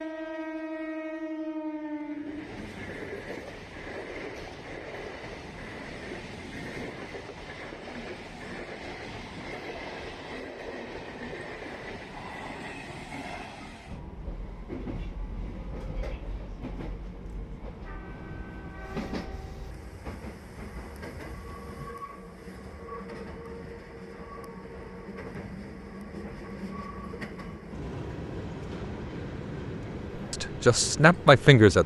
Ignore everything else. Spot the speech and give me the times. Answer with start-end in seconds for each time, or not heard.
30.3-31.8.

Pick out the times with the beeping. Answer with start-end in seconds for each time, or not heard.
not heard.